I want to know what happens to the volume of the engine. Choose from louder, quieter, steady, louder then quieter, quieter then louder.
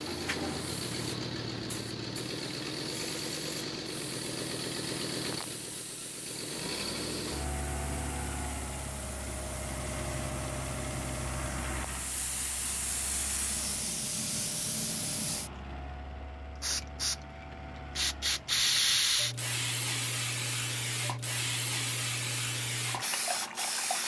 quieter.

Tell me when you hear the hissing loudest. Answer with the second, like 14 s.
19 s.